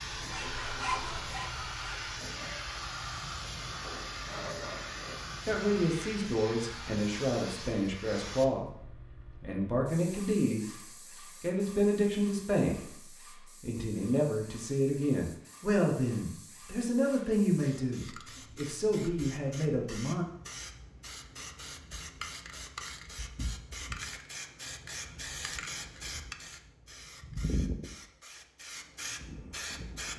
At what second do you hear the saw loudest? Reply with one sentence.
The loudest moment of the saw is at 1 second.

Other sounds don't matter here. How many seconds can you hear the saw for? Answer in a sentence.
The saw can be heard for 2 seconds in total.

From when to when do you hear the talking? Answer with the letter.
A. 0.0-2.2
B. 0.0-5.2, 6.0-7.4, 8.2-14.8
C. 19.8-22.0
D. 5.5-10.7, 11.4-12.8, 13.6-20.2
D.